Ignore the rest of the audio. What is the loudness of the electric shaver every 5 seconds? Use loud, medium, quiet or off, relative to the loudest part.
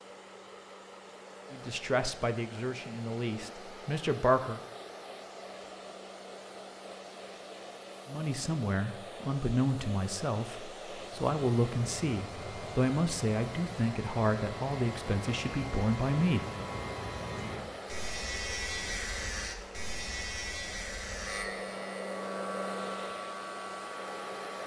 off, off, medium, loud, loud.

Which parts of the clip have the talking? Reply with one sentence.
You can hear the talking from 1.5 to 4.6 s and from 8.1 to 16.4 s.